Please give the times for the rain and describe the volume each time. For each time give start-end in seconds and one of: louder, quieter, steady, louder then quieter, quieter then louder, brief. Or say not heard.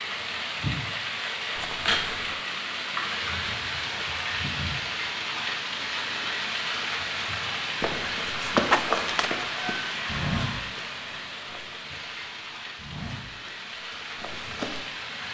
0.0-15.3 quieter.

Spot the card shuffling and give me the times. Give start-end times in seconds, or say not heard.
1.6-2.4, 8.7-9.3.